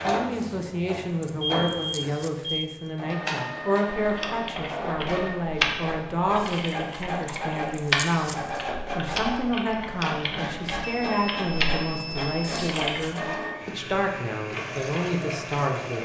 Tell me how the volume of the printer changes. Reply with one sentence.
The volume of the printer stays about the same.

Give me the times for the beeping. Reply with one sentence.
The beeping can be heard from 1.4 to 2.7 s and from 10.8 to 12.6 s.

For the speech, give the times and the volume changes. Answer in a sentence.
The speech can be heard from 0.0 to 15.9 s, at a steady volume.